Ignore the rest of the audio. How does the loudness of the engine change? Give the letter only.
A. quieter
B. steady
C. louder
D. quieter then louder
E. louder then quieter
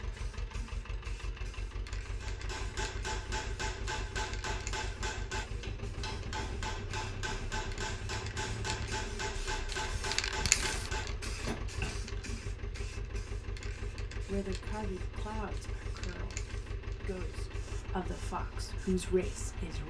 B.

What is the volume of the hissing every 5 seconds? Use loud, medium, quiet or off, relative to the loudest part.
quiet, medium, loud, quiet.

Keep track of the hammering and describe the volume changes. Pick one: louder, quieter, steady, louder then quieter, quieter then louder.
steady.